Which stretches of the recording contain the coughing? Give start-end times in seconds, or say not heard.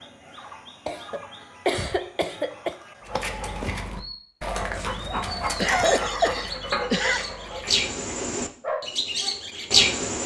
0.8-2.8, 5.5-7.3.